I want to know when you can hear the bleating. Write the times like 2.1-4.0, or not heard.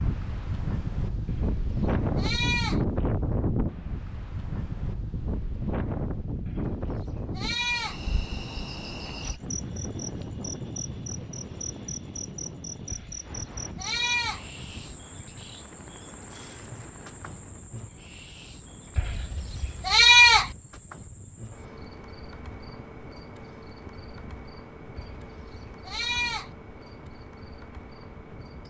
1.2-2.9, 6.5-8.0, 12.9-14.4, 18.9-20.5, 24.9-26.6.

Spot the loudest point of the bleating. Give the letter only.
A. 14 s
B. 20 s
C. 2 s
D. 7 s
B.